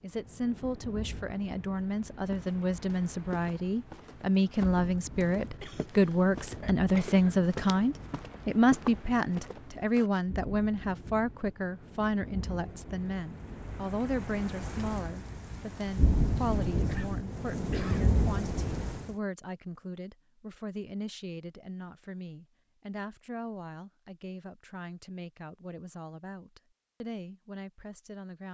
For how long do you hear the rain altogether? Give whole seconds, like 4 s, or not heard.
19 s.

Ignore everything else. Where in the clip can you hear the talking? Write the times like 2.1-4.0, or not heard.
0.0-28.4.